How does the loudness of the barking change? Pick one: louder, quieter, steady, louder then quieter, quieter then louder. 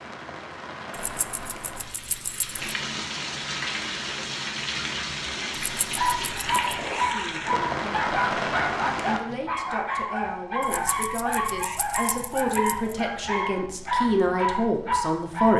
steady.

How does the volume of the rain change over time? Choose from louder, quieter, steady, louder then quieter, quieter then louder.
louder.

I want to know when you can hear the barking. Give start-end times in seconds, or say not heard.
6.0-15.5.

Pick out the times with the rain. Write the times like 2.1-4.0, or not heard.
0.0-9.2.